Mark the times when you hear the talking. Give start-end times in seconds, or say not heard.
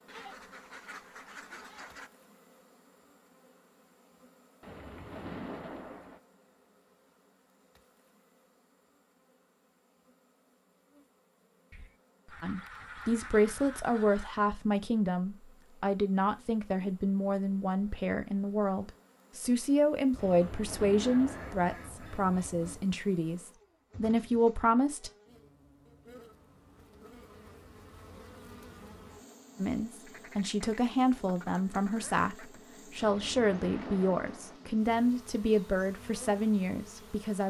12.4-25.1, 29.6-37.4.